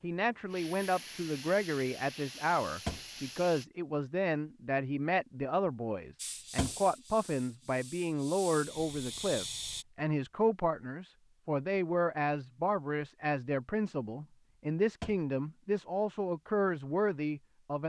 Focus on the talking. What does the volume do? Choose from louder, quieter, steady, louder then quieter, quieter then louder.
steady.